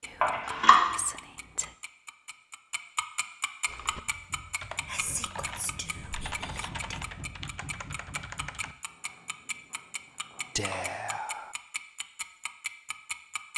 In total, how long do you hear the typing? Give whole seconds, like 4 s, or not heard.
5 s.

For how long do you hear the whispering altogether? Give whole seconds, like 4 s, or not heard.
5 s.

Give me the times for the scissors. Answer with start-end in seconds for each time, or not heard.
0.2-0.8, 9.0-10.8.